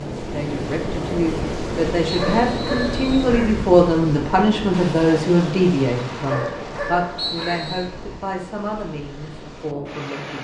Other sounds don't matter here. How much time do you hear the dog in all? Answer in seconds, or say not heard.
3 s.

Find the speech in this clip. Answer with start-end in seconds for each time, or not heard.
0.1-10.4.